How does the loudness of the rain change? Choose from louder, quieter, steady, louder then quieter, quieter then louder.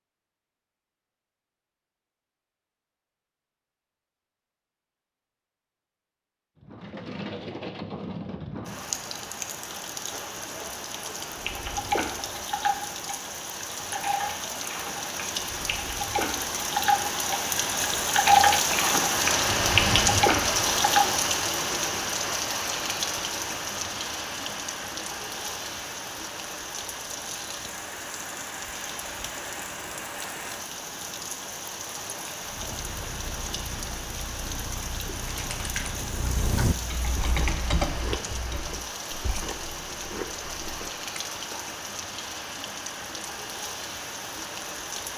louder then quieter.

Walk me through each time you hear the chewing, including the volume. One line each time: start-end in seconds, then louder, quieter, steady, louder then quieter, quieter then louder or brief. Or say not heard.
32.4-41.8 louder then quieter.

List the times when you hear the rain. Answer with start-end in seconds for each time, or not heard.
6.5-45.1.